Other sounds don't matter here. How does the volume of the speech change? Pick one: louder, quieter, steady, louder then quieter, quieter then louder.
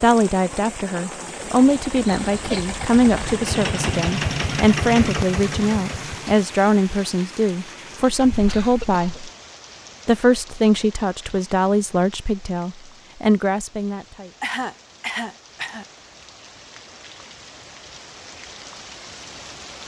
steady.